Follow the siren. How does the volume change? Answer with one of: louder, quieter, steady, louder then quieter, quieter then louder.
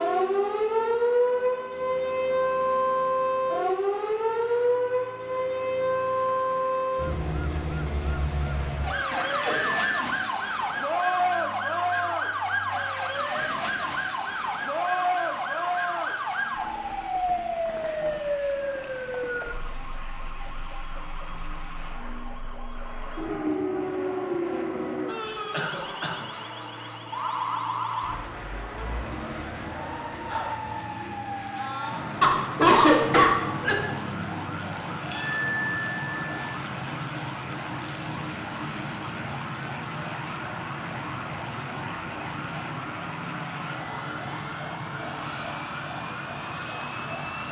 quieter.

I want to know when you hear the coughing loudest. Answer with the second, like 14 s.
33 s.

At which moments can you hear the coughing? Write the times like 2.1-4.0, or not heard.
9.1-10.2, 25.5-26.2, 32.2-33.8.